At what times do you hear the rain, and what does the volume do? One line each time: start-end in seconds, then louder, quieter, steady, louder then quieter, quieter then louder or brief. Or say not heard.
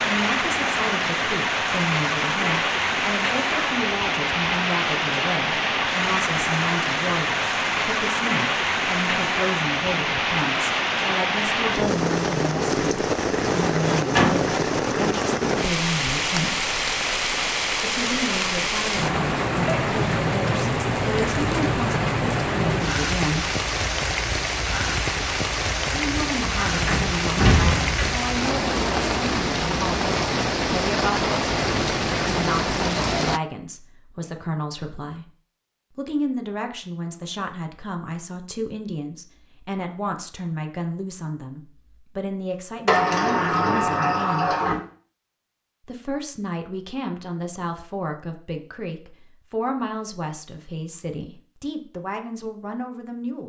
0.0-33.4 steady.